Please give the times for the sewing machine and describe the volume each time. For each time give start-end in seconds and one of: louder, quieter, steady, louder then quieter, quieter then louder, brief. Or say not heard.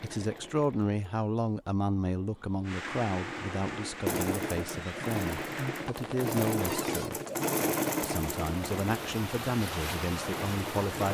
0.0-11.0 louder then quieter.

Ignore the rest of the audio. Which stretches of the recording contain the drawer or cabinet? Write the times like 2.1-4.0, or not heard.
6.7-7.1.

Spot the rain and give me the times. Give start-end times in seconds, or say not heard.
2.6-11.0.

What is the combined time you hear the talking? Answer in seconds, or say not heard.
10 s.